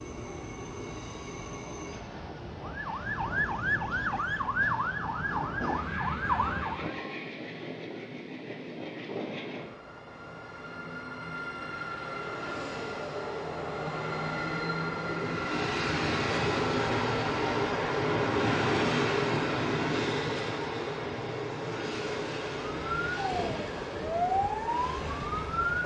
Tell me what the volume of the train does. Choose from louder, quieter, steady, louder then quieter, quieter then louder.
louder then quieter.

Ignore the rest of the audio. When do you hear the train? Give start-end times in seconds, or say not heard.
0.0-25.8.